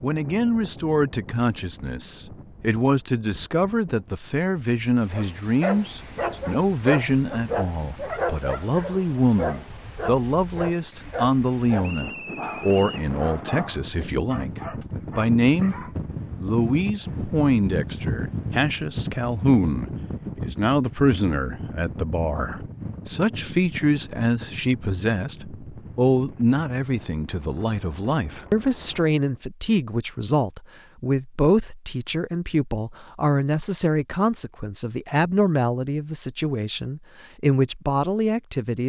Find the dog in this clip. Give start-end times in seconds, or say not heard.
5.0-15.9.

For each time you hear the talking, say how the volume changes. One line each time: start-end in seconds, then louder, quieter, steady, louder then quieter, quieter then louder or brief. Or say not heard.
0.0-38.8 steady.